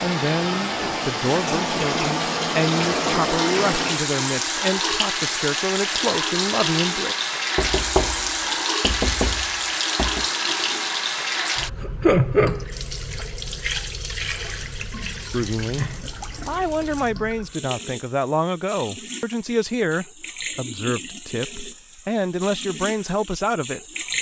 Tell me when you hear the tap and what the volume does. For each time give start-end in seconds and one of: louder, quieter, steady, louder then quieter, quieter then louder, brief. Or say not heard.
0.0-24.1 quieter.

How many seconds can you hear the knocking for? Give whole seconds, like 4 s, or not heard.
3 s.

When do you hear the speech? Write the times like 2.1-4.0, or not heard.
0.0-7.2, 15.3-23.8.